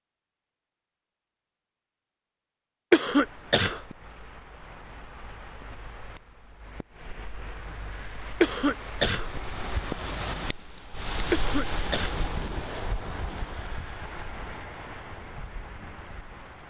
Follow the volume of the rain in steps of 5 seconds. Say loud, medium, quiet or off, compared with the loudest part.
quiet, medium, loud, medium.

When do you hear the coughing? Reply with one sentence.
You can hear the coughing from 2.9 to 3.8 s, from 8.4 to 9.3 s and from 11.3 to 12.2 s.